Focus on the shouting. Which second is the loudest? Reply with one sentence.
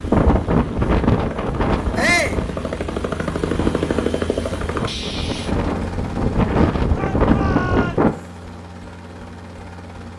The volume of the shouting peaks at 2 seconds.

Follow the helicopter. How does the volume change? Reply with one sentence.
The loudness of the helicopter goes up, then down.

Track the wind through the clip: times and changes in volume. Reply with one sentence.
The wind can be heard from 0.0 to 8.1 s, getting quieter then louder.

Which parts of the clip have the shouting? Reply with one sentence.
The shouting can be heard from 1.9 to 2.4 s and from 7.0 to 8.3 s.